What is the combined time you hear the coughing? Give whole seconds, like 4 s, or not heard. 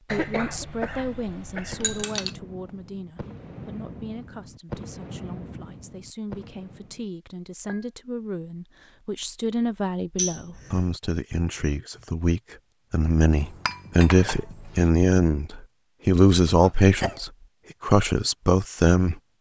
3 s.